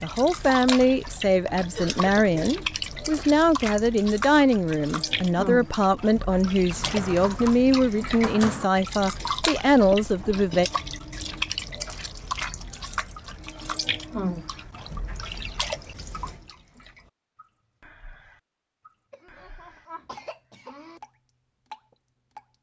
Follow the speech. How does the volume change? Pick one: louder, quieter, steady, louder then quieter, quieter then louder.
steady.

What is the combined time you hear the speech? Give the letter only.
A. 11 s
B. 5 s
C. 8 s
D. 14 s
A.